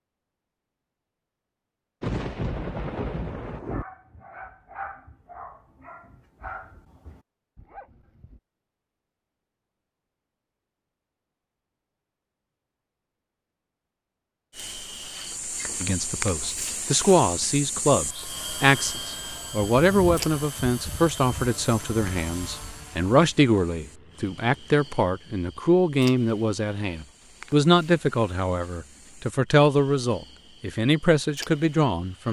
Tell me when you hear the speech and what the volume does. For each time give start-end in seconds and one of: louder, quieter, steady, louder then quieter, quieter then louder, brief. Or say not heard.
15.8-32.2 steady.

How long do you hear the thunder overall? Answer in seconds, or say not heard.
2 s.